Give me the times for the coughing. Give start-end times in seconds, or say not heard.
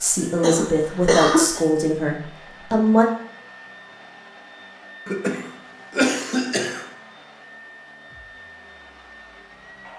0.3-1.6, 5.0-6.8.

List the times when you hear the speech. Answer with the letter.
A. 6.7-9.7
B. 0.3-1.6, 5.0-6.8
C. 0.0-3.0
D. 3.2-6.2
C.